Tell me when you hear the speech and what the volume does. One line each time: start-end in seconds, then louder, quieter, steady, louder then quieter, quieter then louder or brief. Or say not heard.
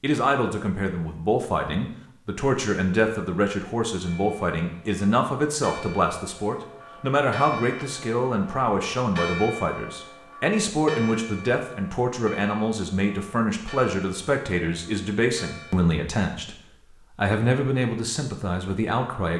0.0-19.3 steady.